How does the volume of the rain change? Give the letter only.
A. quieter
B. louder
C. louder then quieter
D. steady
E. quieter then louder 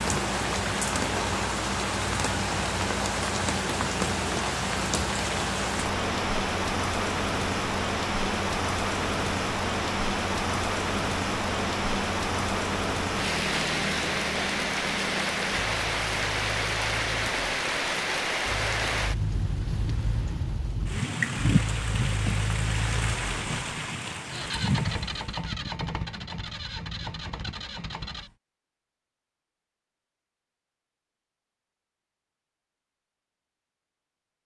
D.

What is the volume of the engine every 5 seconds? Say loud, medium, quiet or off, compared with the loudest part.
loud, loud, loud, medium, loud, loud, off.